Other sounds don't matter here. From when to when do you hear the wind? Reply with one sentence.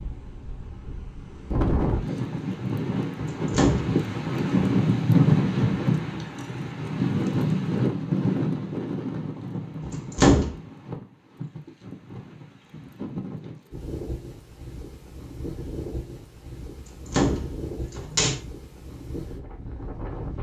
The wind can be heard from 0.0 to 20.3 s.